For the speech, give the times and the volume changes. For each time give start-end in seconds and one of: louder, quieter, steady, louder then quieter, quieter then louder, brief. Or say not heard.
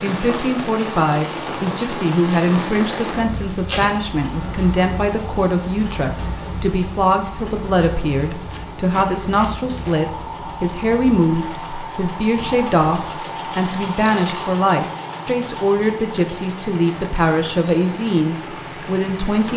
0.0-19.5 steady.